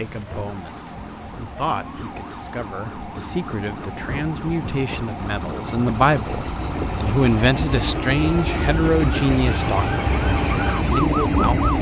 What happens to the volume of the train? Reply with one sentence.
The loudness of the train goes up.